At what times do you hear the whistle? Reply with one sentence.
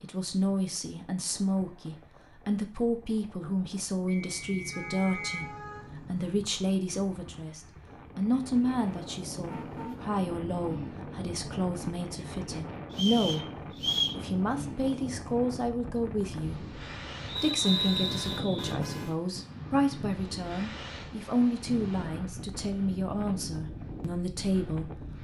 The whistle can be heard from 4.0 to 5.5 s, from 12.9 to 14.2 s and from 17.3 to 18.8 s.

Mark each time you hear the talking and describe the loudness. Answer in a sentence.
You can hear the talking from 0.0 to 25.2 s, at a steady volume.